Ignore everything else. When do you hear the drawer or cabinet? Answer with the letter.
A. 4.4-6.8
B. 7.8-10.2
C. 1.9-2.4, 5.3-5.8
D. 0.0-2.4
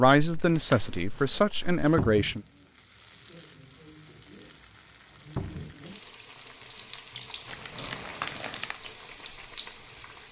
C.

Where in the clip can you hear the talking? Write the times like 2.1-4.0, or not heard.
0.0-2.4.